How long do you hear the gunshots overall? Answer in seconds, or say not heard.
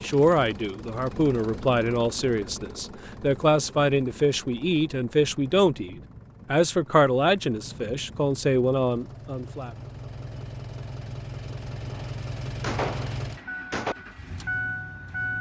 2 s.